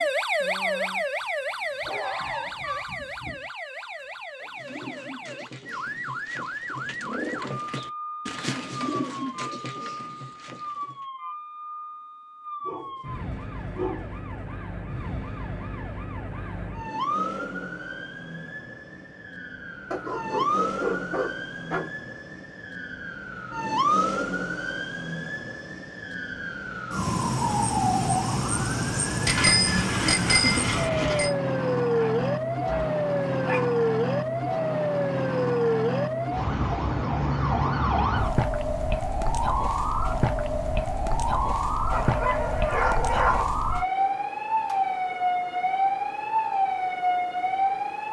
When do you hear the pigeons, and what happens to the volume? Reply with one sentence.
The pigeons can be heard from 4.5 to 11.1 s, getting louder then quieter.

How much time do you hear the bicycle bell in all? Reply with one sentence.
You can hear the bicycle bell for 2 seconds altogether.